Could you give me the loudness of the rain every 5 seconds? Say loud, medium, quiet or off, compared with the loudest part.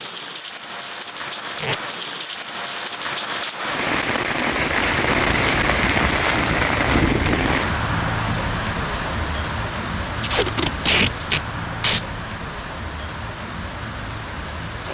loud, loud, medium.